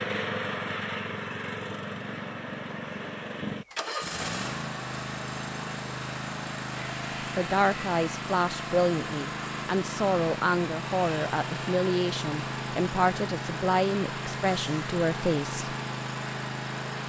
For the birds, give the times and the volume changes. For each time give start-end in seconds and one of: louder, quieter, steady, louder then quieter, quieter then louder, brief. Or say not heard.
not heard.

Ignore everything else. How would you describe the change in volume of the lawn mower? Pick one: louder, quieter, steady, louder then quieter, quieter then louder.
steady.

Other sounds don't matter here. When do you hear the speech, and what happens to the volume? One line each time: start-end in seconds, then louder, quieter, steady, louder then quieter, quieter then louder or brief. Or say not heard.
7.3-15.8 steady.